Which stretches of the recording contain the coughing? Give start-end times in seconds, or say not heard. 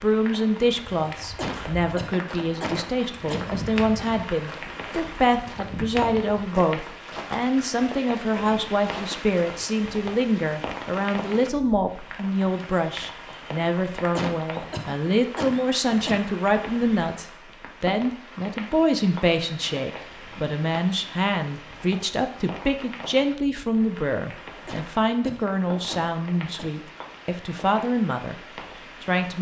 1.4-4.1, 14.2-16.3, 24.6-26.9.